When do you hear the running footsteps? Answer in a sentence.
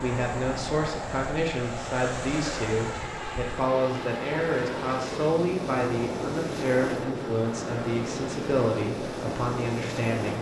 The running footsteps can't be heard in this clip.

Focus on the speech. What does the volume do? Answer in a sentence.
The loudness of the speech stays about the same.